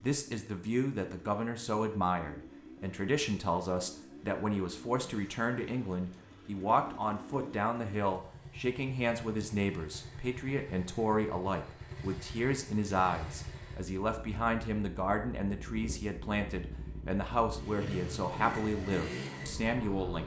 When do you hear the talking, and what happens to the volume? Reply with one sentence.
The talking can be heard from 0.0 to 20.2 s, at a steady volume.